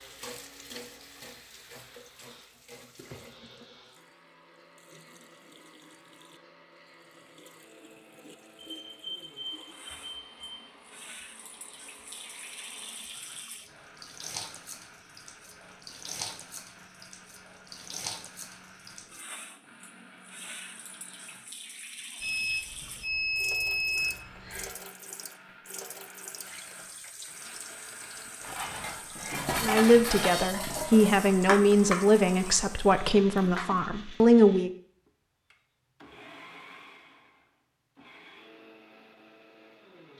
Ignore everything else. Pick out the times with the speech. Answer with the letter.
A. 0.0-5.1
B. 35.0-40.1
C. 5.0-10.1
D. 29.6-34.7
D.